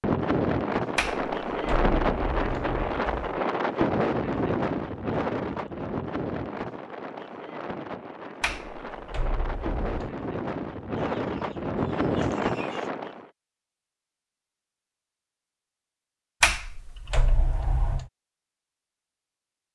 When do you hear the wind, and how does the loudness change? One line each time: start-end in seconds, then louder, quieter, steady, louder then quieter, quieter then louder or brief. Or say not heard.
0.0-13.2 quieter then louder.